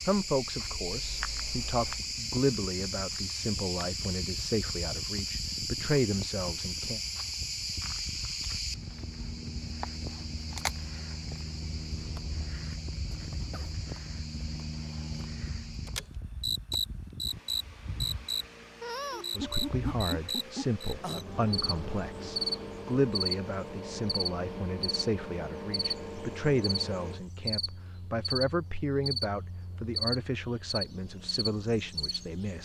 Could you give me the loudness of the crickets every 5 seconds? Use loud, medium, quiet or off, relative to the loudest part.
loud, loud, medium, loud, loud, loud, loud.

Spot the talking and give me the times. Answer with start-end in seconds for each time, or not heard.
0.1-7.0, 19.4-32.6.